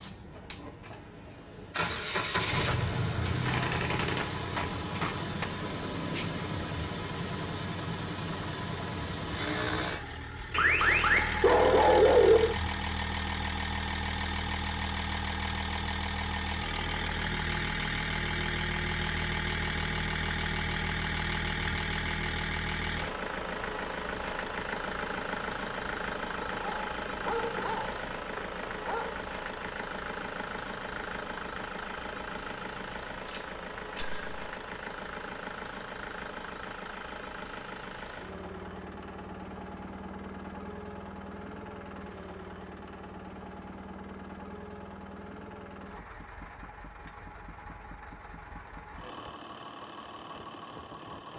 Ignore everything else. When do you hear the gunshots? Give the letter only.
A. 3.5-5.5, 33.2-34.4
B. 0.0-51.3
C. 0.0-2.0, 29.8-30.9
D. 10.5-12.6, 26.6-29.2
A.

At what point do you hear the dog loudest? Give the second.
12 s.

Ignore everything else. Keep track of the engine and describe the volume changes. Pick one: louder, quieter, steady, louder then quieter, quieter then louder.
quieter.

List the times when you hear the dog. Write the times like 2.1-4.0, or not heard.
10.5-12.6, 26.6-29.2.